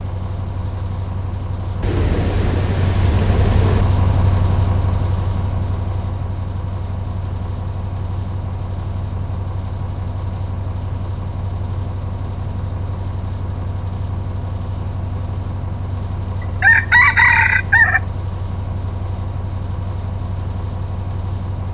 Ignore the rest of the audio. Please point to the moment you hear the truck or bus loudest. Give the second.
4 s.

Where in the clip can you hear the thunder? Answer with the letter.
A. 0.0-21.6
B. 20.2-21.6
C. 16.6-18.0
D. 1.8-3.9
D.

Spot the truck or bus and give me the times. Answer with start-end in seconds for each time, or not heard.
0.0-21.6.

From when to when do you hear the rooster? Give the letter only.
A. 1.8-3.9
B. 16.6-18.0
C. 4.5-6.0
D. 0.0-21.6
B.